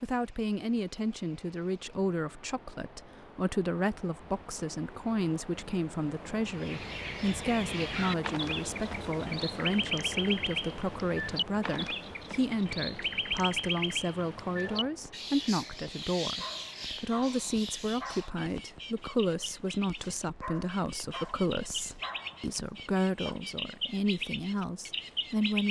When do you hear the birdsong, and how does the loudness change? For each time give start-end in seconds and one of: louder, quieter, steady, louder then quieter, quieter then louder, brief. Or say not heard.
6.5-25.6 quieter then louder.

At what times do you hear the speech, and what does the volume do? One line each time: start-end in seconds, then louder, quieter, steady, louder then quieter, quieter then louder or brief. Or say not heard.
0.0-25.6 steady.